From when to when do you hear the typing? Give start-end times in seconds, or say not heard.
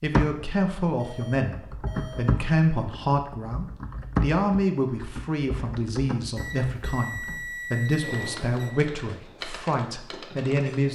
0.0-0.5, 1.3-10.9.